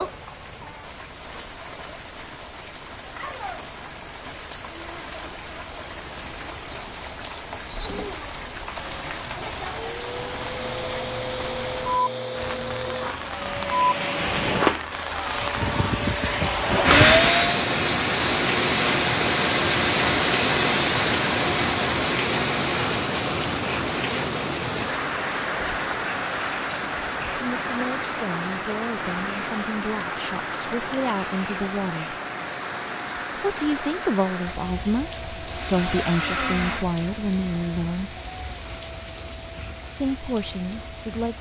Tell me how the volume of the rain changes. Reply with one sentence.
The loudness of the rain goes up, then down.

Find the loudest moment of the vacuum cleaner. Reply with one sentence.
The loudest moment of the vacuum cleaner is at 17 seconds.